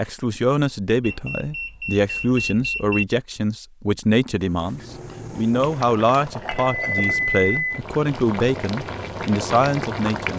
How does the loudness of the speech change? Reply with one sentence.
The loudness of the speech stays about the same.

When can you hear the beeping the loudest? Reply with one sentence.
The loudest moment of the beeping is at 7 seconds.